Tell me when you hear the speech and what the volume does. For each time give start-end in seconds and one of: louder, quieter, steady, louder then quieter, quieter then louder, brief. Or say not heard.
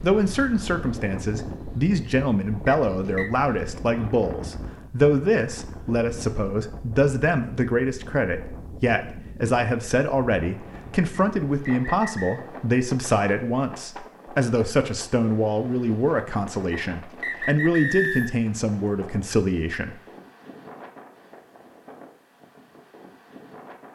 0.0-19.9 steady.